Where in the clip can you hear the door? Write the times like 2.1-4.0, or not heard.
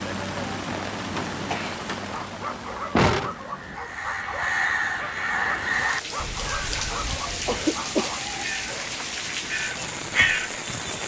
3.0-3.8.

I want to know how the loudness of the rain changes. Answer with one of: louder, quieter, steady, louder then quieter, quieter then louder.
quieter then louder.